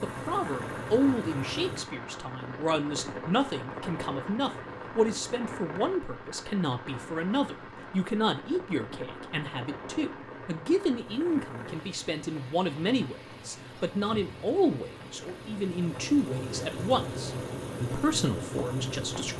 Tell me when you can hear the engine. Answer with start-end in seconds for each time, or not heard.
0.0-1.9, 10.9-19.3.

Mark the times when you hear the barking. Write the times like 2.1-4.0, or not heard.
not heard.